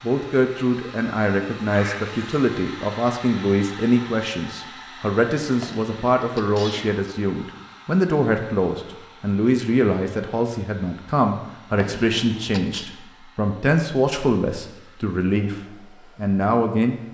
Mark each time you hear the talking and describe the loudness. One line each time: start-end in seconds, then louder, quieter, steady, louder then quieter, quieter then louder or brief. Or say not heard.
0.0-16.9 steady.